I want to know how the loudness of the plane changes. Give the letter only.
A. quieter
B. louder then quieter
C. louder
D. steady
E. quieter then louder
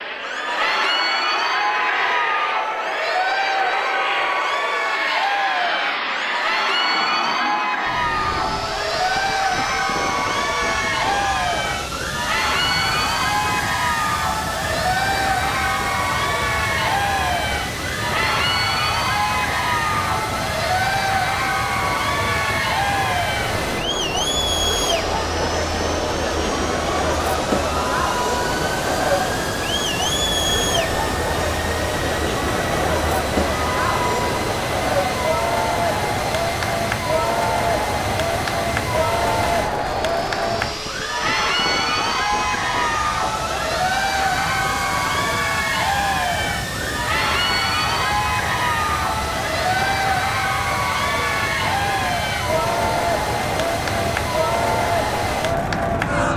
D.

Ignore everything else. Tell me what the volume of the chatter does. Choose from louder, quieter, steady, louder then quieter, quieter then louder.
steady.